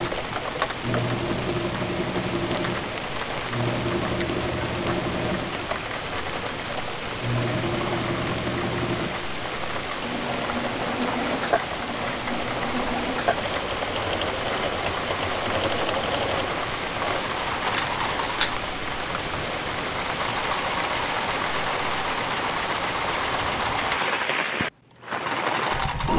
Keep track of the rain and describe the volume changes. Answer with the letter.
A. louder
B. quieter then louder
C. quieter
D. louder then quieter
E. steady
E.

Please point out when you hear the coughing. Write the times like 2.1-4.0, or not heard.
not heard.